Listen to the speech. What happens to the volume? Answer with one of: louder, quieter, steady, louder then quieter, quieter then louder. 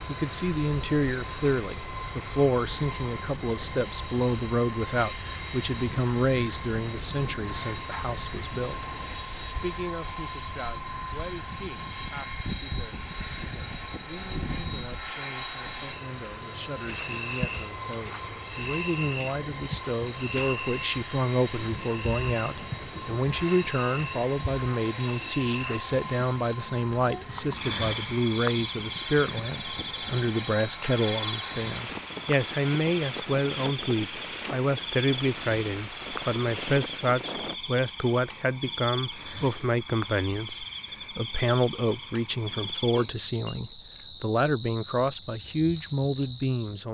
quieter then louder.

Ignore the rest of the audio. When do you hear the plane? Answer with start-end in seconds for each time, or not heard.
0.0-37.6.